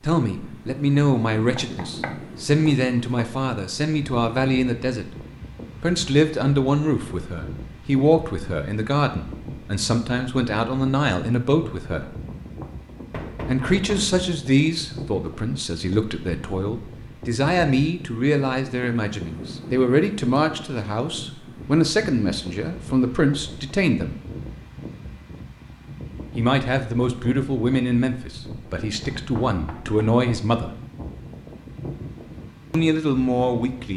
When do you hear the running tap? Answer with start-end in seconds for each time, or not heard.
not heard.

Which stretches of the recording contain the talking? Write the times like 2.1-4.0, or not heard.
0.0-5.1, 5.8-12.2, 13.4-24.1, 26.4-30.7, 32.7-33.9.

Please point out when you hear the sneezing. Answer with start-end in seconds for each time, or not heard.
not heard.